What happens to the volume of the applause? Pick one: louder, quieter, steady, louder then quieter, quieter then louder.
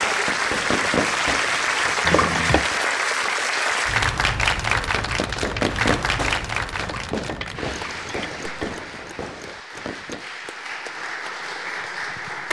quieter.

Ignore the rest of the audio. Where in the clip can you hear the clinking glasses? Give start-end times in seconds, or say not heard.
2.0-2.7, 6.8-8.8.